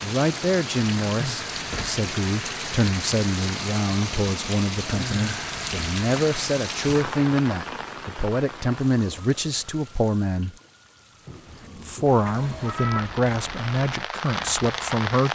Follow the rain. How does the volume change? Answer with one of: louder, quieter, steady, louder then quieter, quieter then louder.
quieter then louder.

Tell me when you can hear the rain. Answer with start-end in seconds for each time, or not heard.
0.0-15.3.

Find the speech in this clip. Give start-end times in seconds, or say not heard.
0.0-10.6, 11.8-15.3.